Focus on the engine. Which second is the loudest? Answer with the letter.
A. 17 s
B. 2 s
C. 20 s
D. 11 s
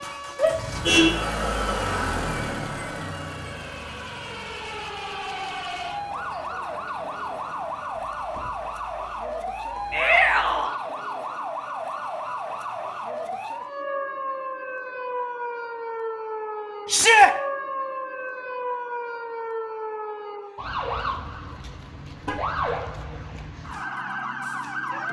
B.